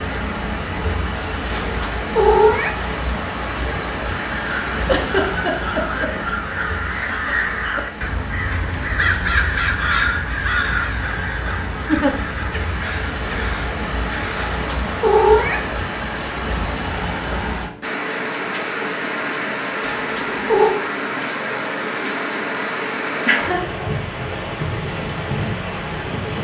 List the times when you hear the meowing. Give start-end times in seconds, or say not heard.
1.5-2.8, 14.3-15.7, 19.8-20.8.